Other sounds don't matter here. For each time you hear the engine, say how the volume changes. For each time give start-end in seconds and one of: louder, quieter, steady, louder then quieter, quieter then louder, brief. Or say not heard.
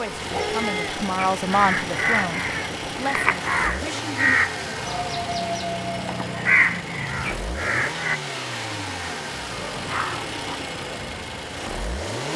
0.0-12.3 steady.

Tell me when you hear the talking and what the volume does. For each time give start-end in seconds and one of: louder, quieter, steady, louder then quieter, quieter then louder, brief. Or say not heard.
0.0-4.4 louder then quieter.